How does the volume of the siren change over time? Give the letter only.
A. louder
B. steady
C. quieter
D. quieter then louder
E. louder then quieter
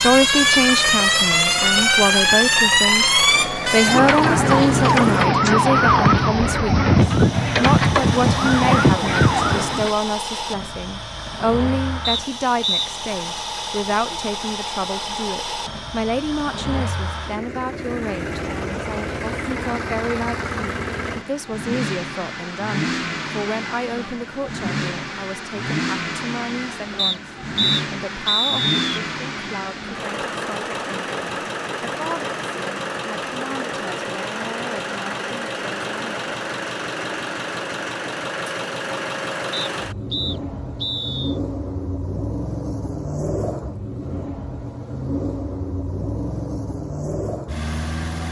B.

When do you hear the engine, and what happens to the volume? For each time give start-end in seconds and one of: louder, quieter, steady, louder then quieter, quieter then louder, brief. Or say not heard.
0.0-48.2 steady.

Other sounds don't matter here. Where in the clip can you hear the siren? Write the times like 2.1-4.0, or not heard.
0.0-9.9.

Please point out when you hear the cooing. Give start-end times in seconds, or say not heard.
not heard.